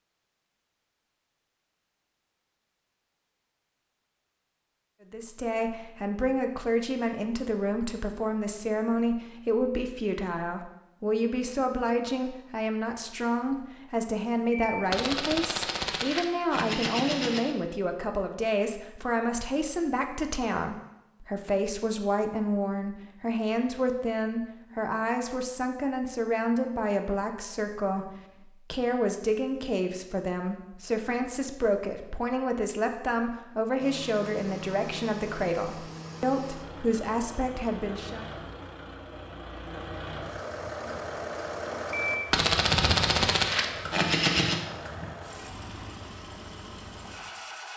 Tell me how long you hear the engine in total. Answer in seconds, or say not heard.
14 s.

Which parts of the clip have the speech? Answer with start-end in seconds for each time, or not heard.
5.1-28.1, 28.7-38.3.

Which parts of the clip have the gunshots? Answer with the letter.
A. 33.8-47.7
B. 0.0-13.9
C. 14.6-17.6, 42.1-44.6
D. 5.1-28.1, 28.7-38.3
C.